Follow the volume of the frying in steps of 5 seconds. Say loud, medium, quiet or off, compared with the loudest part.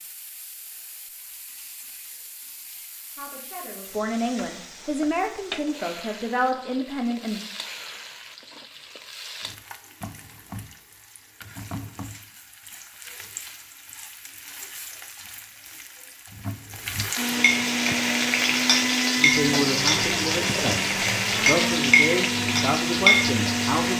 quiet, quiet, quiet, loud, loud.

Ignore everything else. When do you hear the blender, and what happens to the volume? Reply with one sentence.
The blender can be heard from 17.1 to 23.9 s, at a steady volume.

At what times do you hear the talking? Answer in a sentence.
The talking can be heard from 3.1 to 7.4 s and from 19.1 to 23.9 s.